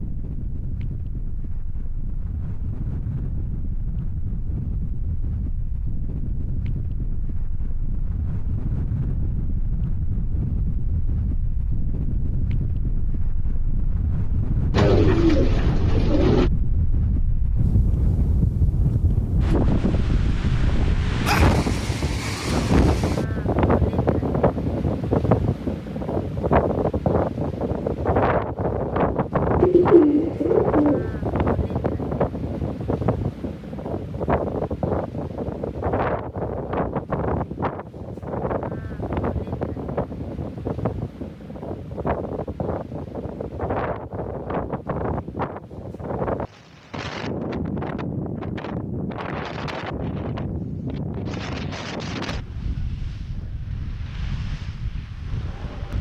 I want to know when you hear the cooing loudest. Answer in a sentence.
The loudest moment of the cooing is at 30 seconds.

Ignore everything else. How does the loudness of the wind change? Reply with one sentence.
The volume of the wind goes up, then down.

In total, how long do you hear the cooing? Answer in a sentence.
The cooing can be heard for 3 seconds in total.